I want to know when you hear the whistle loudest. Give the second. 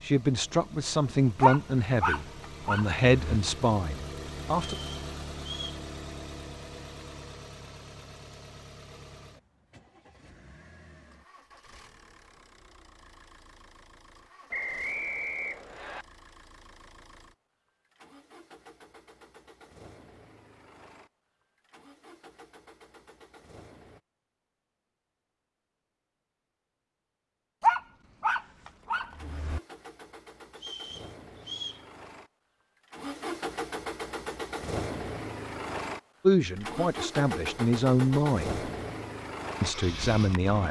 15 s.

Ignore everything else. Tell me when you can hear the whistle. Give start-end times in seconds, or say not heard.
4.8-5.8, 14.5-16.1, 30.6-31.9.